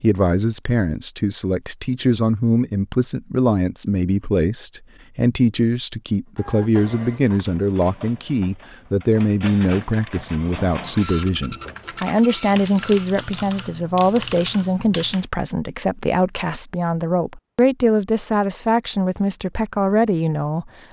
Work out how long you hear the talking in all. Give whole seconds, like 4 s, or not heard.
21 s.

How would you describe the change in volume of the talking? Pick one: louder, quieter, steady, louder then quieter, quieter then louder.
steady.